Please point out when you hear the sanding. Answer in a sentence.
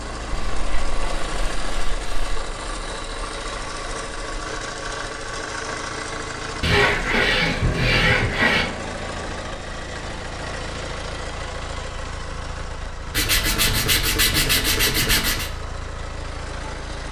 The sanding can be heard from 0.3 to 2.4 s, from 6.6 to 8.7 s and from 13.2 to 15.5 s.